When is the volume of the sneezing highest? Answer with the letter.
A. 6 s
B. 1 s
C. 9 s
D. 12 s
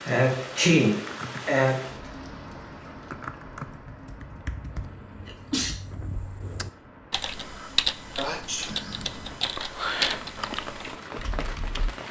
B.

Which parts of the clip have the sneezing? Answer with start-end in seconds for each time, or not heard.
0.1-1.9, 5.1-5.7, 8.2-9.1.